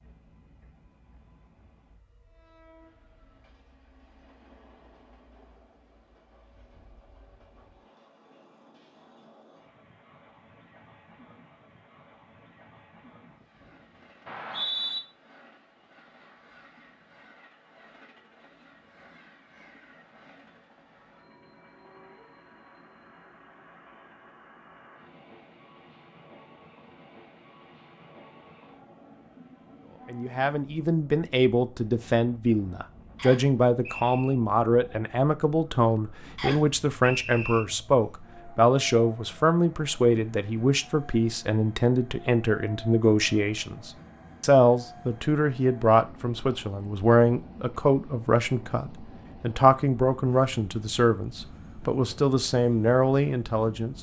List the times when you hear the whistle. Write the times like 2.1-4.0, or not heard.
14.2-15.0, 33.1-34.4, 36.4-37.6.